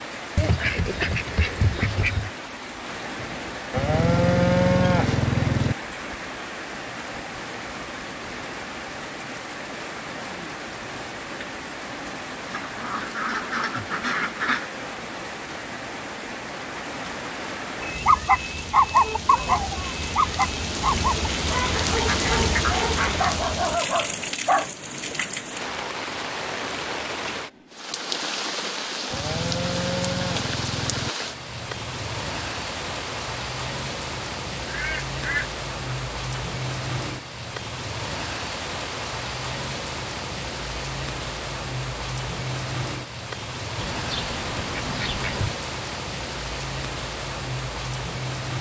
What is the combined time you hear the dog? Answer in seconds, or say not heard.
7 s.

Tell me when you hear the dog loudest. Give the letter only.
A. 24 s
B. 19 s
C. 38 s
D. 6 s
B.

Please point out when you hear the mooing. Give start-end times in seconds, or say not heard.
3.7-5.8, 29.1-31.1.